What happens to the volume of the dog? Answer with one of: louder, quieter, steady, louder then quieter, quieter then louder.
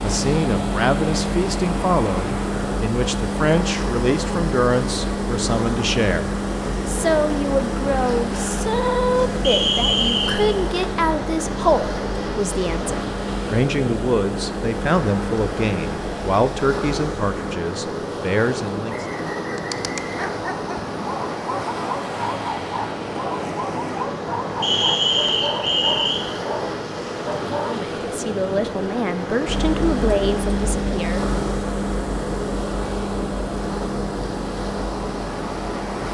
steady.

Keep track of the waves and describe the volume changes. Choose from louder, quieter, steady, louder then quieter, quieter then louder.
steady.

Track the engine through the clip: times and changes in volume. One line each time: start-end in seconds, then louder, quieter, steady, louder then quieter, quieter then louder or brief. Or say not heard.
0.0-17.3 quieter
29.4-36.0 quieter.